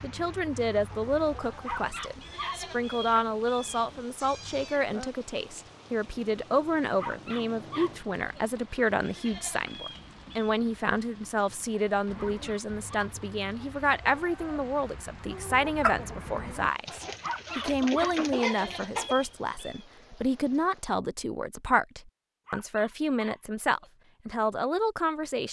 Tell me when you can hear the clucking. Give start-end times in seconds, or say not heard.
0.0-4.7, 12.1-19.1.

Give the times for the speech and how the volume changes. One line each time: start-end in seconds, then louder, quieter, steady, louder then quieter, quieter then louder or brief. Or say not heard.
0.0-25.4 steady.